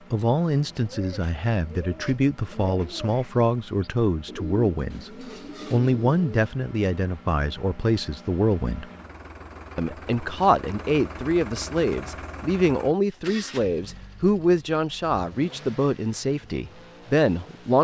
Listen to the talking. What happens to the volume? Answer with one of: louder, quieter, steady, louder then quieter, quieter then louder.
steady.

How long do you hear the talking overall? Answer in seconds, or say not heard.
17 s.